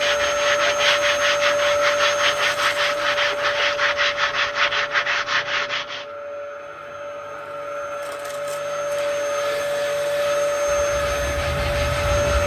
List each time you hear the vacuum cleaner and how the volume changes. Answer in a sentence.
You can hear the vacuum cleaner from 0.0 to 12.4 s, getting quieter then louder.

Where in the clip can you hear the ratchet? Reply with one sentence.
You can't hear the ratchet here.